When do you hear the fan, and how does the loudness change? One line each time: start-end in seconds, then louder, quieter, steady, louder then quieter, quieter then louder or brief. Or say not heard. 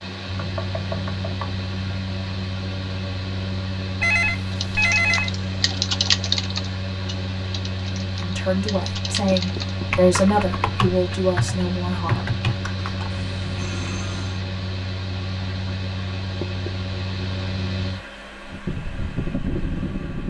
0.0-20.2 steady.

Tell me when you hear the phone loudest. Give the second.
5 s.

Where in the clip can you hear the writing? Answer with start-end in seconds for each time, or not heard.
not heard.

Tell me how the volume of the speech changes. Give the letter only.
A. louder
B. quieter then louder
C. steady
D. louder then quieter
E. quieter
D.